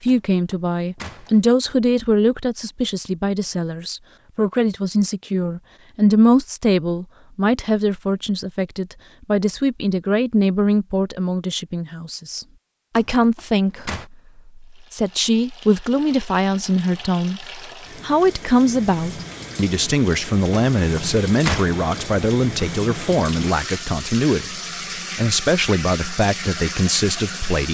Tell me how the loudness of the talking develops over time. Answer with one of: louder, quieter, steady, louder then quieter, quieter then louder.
steady.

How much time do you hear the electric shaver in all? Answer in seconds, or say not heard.
not heard.